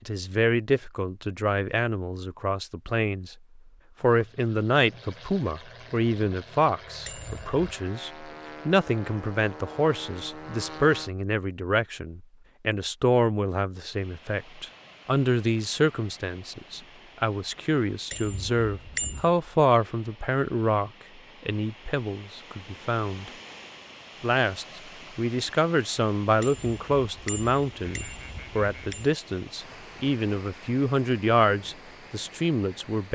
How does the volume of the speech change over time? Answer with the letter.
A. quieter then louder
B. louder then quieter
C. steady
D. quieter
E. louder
C.